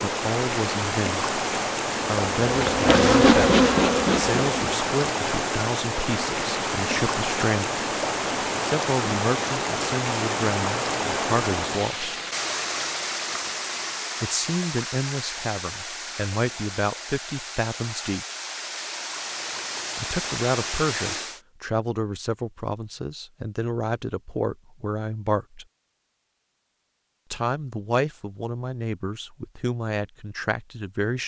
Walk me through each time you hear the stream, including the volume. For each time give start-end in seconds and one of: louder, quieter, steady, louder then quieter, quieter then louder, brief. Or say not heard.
0.0-21.4 quieter.